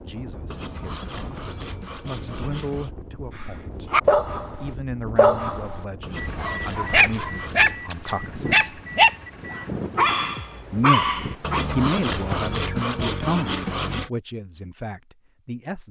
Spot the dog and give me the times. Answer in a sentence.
You can hear the dog from 3.9 to 11.7 s.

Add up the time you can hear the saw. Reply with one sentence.
You can hear the saw for 7 seconds altogether.